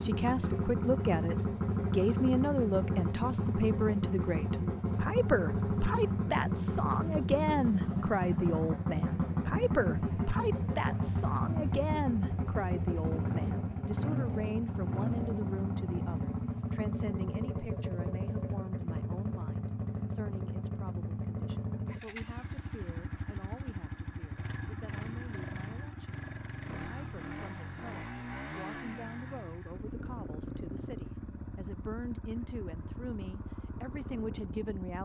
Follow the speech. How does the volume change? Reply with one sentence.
The volume of the speech goes down, then up.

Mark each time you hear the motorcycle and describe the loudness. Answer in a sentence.
The motorcycle can be heard from 0.0 to 35.0 s, getting quieter.